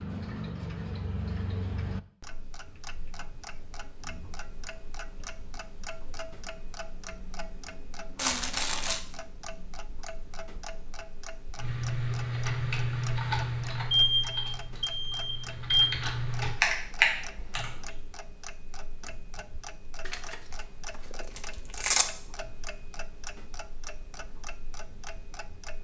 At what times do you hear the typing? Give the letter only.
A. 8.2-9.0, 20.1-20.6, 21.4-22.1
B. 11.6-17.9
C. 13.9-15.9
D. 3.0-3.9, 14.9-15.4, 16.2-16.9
B.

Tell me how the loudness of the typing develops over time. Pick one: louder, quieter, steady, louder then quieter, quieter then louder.
quieter then louder.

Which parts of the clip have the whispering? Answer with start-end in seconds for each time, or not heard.
not heard.